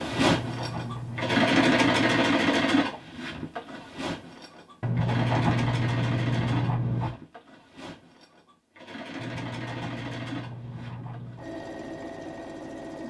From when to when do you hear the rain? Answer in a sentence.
The rain can't be heard in this clip.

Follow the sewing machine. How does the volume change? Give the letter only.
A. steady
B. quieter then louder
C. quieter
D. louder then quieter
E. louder
C.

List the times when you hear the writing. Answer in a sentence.
The writing can be heard from 0.1 to 2.2 s, from 4.8 to 7.2 s and from 9.2 to 11.6 s.